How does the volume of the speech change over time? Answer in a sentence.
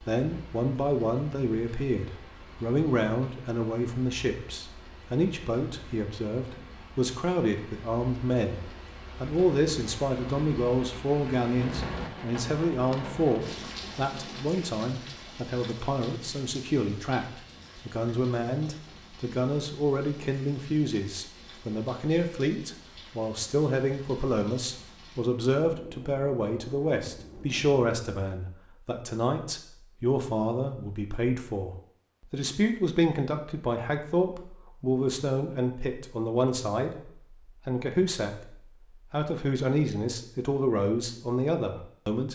The volume of the speech stays about the same.